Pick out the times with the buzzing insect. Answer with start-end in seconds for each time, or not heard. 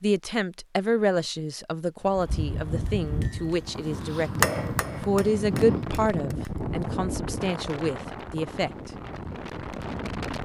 not heard.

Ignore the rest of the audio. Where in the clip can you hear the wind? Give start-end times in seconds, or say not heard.
2.0-10.4.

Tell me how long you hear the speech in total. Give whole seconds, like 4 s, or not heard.
9 s.